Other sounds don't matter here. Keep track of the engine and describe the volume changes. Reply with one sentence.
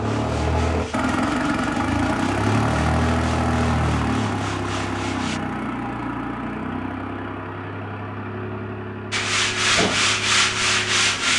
The loudness of the engine goes down.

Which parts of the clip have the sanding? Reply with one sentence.
The sanding can be heard from 0.0 to 5.4 s and from 9.1 to 11.3 s.